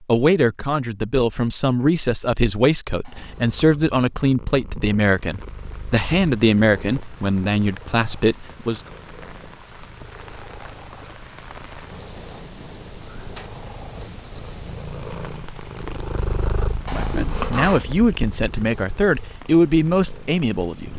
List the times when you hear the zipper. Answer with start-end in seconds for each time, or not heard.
3.0-3.6, 16.9-17.8.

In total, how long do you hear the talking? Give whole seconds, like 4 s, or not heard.
13 s.